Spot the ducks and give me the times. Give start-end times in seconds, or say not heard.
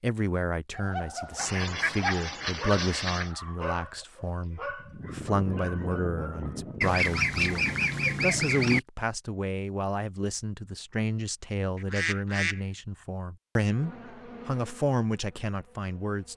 1.4-3.3, 6.8-8.8, 11.8-12.6.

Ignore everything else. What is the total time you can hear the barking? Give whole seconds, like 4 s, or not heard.
7 s.